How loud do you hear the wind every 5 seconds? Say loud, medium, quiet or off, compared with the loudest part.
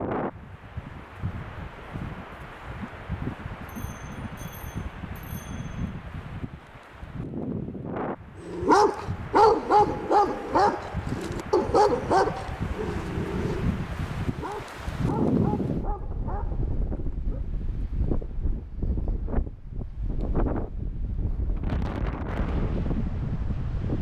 medium, medium, loud, loud, loud.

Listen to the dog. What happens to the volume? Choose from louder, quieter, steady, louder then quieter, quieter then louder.
quieter.